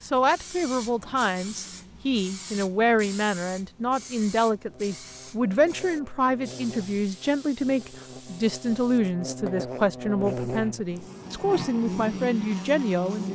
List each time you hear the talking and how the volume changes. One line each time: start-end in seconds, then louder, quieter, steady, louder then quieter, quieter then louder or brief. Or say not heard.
0.0-13.3 steady.